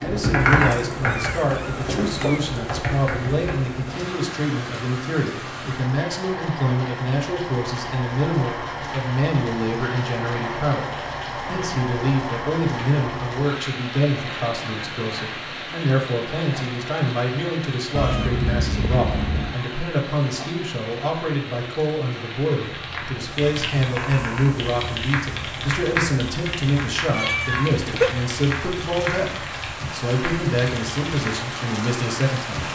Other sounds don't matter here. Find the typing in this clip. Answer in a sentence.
The typing can be heard from 0.0 to 3.6 s and from 22.7 to 31.4 s.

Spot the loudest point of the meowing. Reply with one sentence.
The volume of the meowing peaks at 28 seconds.